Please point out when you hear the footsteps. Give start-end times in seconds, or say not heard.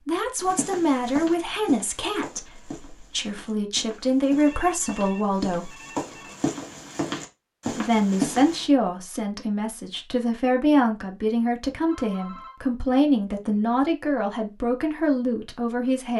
0.3-8.7.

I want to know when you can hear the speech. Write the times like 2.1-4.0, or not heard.
0.1-5.8, 7.7-16.1.